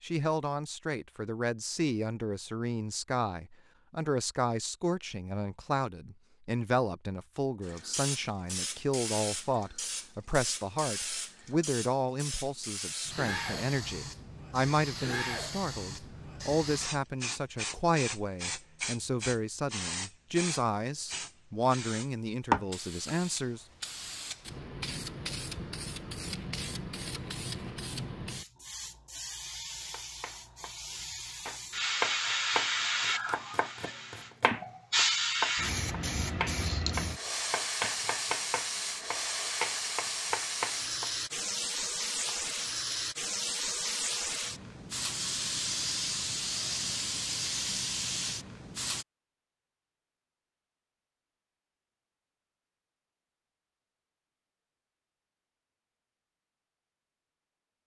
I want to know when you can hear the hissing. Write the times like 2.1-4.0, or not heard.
7.6-49.0.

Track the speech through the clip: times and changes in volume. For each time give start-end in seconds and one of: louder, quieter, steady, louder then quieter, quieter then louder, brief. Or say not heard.
0.0-23.6 steady.